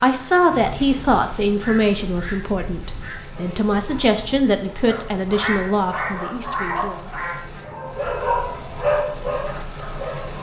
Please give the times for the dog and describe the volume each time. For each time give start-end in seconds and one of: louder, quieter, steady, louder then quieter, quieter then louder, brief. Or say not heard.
3.4-10.3 louder.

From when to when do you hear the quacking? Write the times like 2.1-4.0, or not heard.
1.6-3.2, 5.3-7.6.